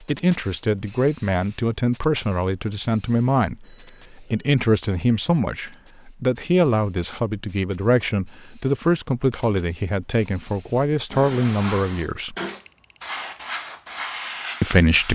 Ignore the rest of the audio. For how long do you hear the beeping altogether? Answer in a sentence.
The beeping can be heard for 2 seconds in total.